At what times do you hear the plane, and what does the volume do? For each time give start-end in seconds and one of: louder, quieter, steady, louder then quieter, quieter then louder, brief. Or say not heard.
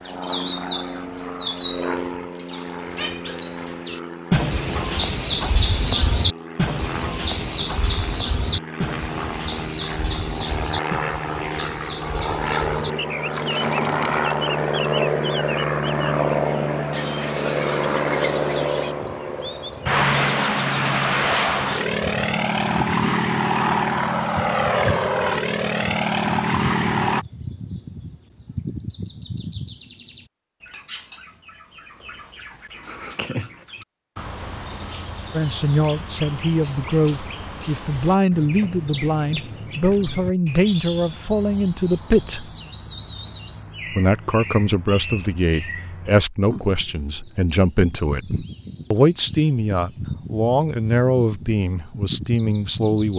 0.0-27.2 louder.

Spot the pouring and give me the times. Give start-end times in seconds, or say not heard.
13.3-14.3.